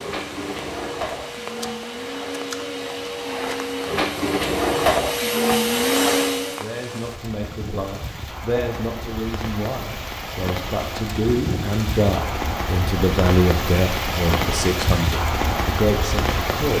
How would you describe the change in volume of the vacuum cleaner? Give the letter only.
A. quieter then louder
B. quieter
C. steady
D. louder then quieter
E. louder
E.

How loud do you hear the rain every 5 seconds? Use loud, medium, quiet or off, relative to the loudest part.
quiet, medium, loud, loud.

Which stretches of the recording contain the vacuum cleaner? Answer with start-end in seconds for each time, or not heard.
0.0-6.7.